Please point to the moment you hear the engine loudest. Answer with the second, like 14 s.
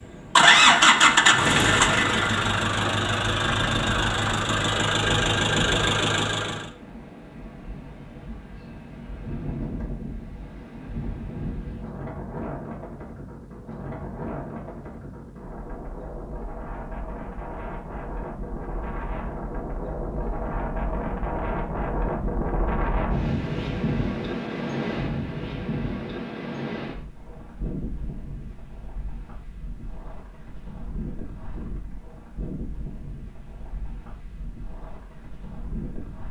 1 s.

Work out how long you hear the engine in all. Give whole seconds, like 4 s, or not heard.
6 s.